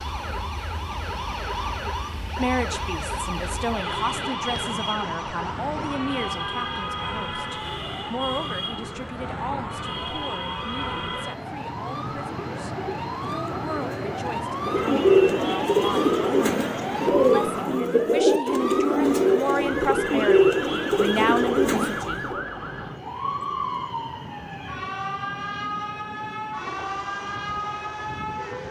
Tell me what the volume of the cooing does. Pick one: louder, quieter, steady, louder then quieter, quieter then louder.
louder.